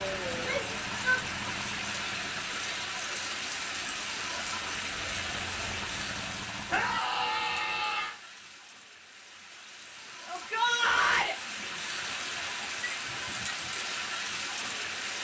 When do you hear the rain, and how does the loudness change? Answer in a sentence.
The rain can be heard from 0.0 to 15.1 s, getting quieter then louder.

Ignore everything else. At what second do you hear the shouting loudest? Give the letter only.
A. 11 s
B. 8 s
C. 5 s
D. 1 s
A.